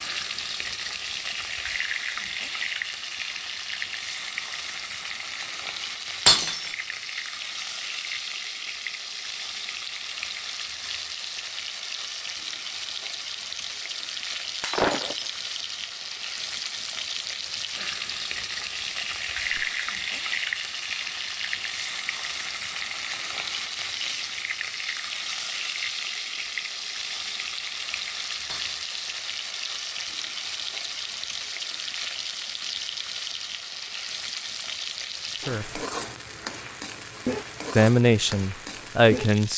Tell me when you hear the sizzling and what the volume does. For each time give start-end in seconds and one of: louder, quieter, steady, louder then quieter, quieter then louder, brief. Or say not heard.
0.0-39.5 steady.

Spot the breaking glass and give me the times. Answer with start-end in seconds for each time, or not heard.
6.2-6.8, 14.6-15.4, 28.4-28.9.